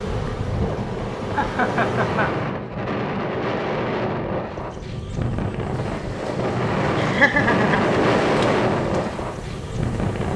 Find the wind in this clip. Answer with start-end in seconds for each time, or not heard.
0.0-10.3.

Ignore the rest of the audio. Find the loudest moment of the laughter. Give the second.
7 s.